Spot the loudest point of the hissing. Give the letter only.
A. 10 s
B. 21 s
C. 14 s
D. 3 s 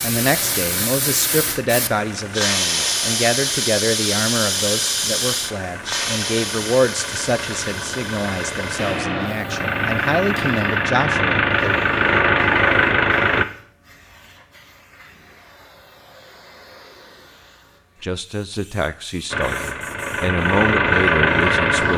D.